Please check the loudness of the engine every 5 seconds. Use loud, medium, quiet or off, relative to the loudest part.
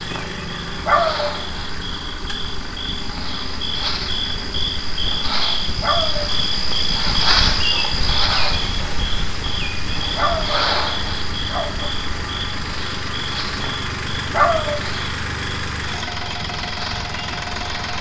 medium, medium, loud, loud.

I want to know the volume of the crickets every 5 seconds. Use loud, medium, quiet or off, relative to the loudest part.
medium, loud, medium, quiet.